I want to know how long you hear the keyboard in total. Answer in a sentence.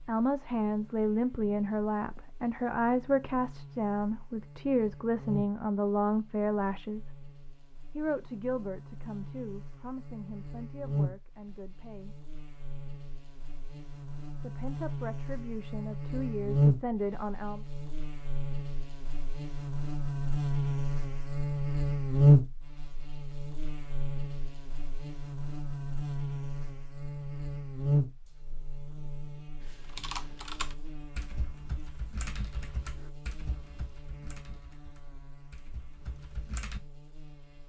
The keyboard can be heard for 7 seconds in total.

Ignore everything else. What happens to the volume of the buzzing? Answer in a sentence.
The loudness of the buzzing goes up, then down.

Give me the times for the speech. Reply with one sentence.
The speech can be heard from 0.1 to 7.2 s, from 8.0 to 12.2 s and from 14.4 to 17.6 s.